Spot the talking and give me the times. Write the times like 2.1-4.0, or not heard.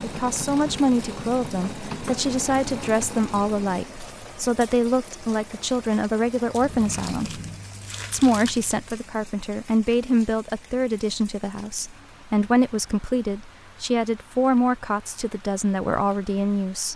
0.0-7.4, 8.1-16.9.